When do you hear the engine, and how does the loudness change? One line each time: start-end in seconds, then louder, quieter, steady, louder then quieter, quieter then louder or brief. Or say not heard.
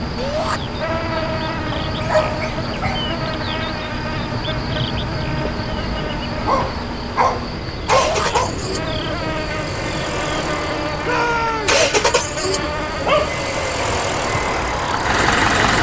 0.0-15.7 louder.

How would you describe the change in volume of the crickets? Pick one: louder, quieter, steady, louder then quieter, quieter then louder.
steady.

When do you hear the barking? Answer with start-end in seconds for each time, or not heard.
1.7-3.1, 6.5-8.6, 12.6-13.3.